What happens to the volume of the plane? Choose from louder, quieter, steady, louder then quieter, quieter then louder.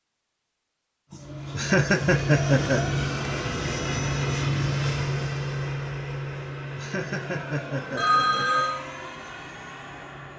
quieter.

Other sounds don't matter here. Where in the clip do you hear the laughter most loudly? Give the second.
2 s.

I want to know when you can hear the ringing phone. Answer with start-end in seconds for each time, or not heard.
8.0-8.8.